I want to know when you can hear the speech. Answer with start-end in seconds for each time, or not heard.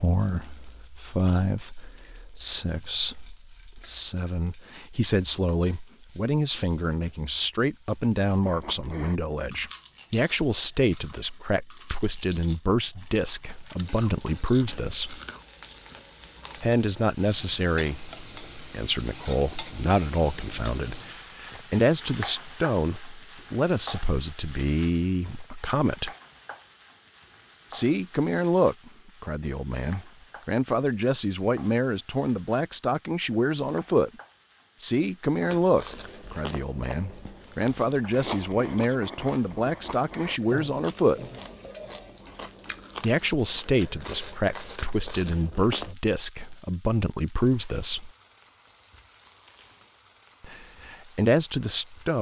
0.0-15.2, 16.6-26.1, 27.7-34.1, 34.8-41.2, 43.0-48.1, 50.4-52.1.